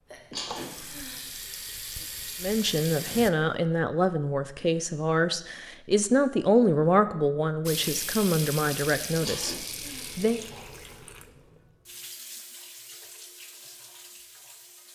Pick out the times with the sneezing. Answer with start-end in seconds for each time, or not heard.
0.1-1.2, 9.0-10.1.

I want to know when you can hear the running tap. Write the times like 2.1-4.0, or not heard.
0.0-3.3, 7.7-14.9.